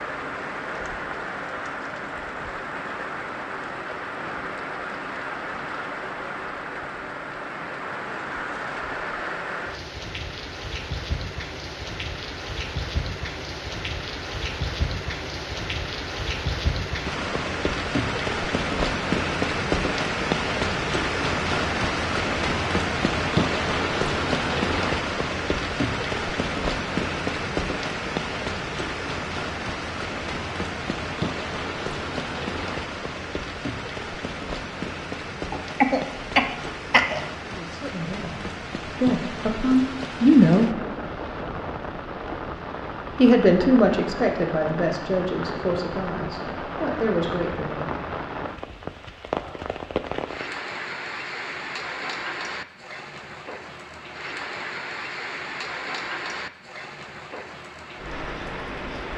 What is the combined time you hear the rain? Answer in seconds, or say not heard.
59 s.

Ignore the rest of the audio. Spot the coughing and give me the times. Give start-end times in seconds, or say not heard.
35.5-37.2.